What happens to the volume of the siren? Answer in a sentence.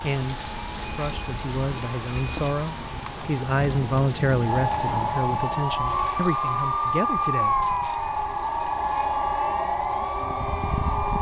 The loudness of the siren goes up.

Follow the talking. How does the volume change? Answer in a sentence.
The volume of the talking goes up, then down.